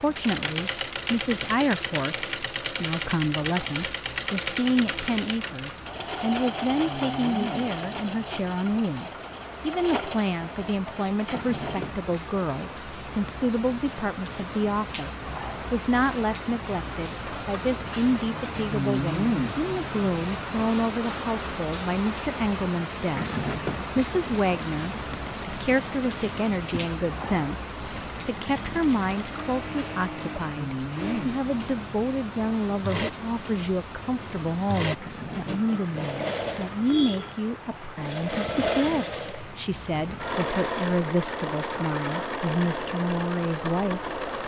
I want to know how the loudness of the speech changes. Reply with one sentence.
The loudness of the speech stays about the same.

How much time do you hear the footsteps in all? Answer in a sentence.
The footsteps can't be heard in this clip.